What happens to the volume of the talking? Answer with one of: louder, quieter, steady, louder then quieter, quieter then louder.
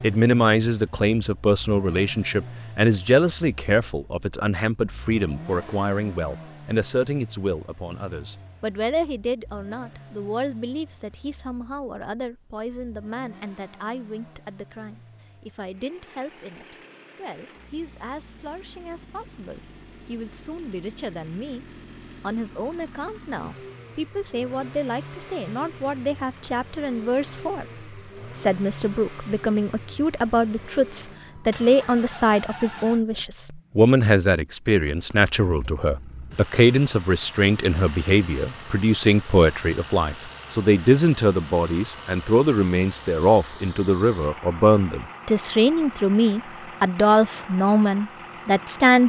quieter then louder.